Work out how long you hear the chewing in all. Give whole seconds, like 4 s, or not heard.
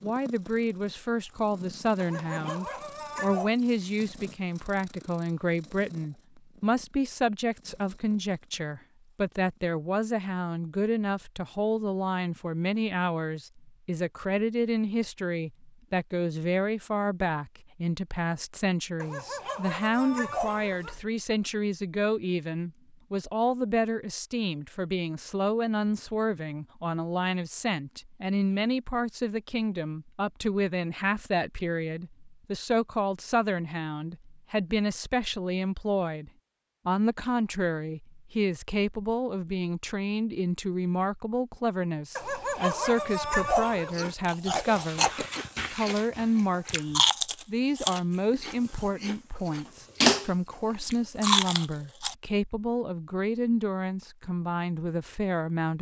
8 s.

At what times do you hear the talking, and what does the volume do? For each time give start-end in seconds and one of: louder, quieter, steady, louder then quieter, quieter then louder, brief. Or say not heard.
0.0-55.7 steady.